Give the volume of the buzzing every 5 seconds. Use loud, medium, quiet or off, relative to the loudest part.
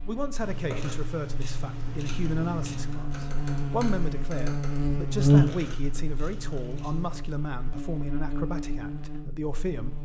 medium, loud.